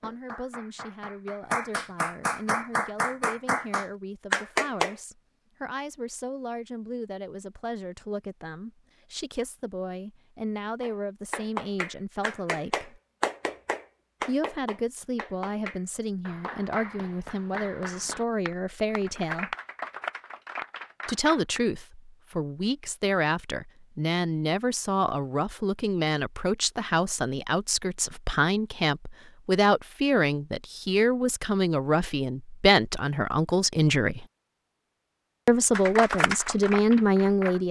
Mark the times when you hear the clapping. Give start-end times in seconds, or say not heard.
0.0-5.0, 10.8-21.6, 35.7-37.6.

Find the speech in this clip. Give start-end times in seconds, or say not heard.
0.0-13.0, 14.2-19.6, 21.1-34.2, 35.5-37.6.